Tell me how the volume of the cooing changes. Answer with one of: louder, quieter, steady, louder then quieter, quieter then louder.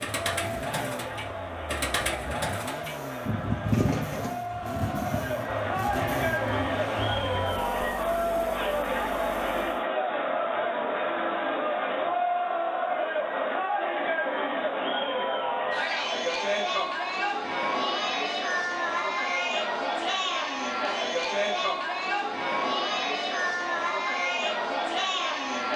louder then quieter.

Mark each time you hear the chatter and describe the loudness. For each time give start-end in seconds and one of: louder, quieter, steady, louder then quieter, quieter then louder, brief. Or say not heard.
0.0-25.7 louder.